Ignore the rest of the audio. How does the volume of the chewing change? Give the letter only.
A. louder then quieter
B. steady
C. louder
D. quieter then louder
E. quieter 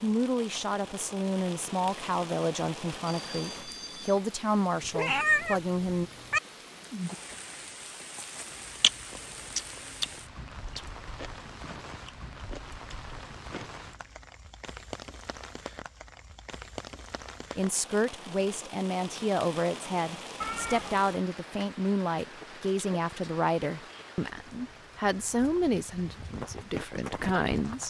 E.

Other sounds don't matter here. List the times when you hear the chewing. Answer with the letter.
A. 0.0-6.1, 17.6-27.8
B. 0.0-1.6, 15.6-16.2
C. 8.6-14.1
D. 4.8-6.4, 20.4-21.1
C.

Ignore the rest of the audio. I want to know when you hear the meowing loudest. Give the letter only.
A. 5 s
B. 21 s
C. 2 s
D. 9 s
A.